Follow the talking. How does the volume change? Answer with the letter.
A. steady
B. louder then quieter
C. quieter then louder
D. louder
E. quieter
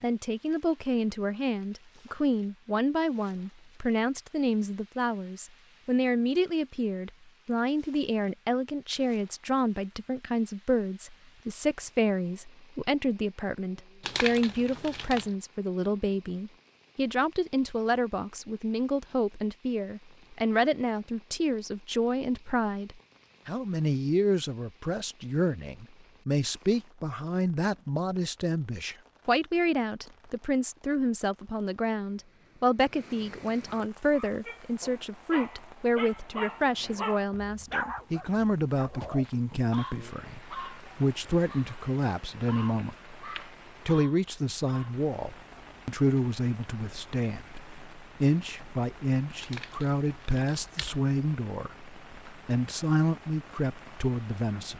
A.